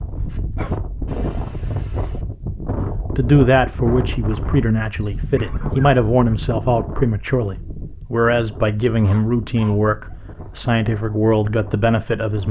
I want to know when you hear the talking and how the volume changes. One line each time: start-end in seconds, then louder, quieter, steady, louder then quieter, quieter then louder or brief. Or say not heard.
3.0-12.4 steady.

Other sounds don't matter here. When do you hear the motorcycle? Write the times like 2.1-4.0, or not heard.
not heard.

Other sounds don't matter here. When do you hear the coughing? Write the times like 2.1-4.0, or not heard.
not heard.